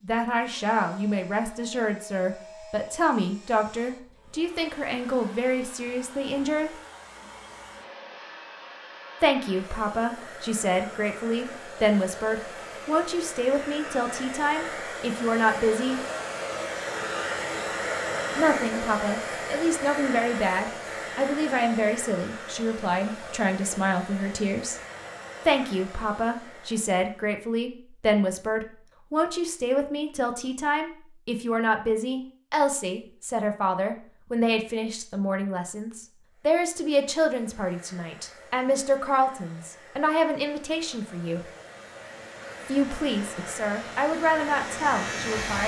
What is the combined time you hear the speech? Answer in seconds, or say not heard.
39 s.